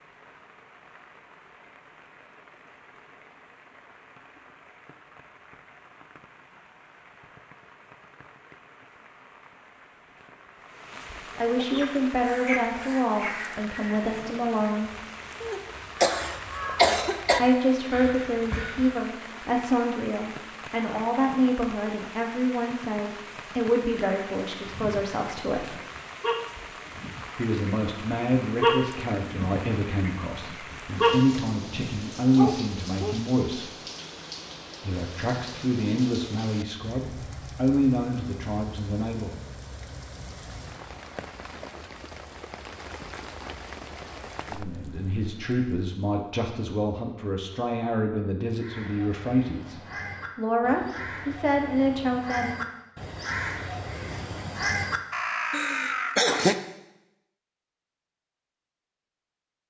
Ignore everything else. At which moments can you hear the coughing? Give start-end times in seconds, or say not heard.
15.4-17.4, 55.5-56.5.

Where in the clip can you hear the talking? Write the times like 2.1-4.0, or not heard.
11.3-14.9, 17.4-25.8, 27.4-33.7, 34.9-39.4, 44.5-52.5.